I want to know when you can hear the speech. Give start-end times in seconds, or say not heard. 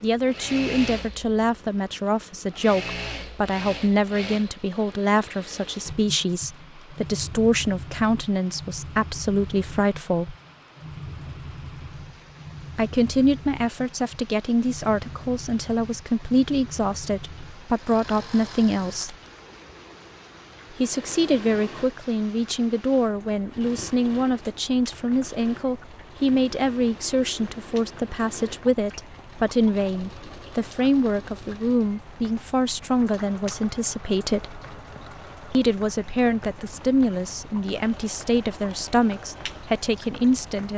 0.0-10.3, 12.8-19.1, 20.7-34.6, 35.5-40.7.